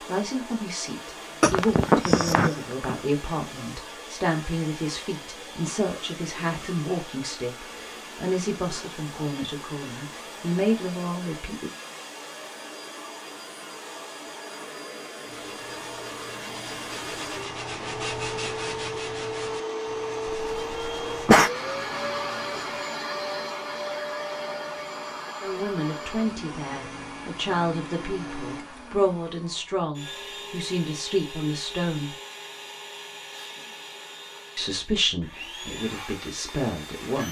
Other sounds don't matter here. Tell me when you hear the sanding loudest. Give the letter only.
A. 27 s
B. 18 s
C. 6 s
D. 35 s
B.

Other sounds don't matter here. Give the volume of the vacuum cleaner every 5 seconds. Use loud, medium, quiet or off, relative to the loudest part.
medium, medium, medium, loud, loud, medium, medium, medium.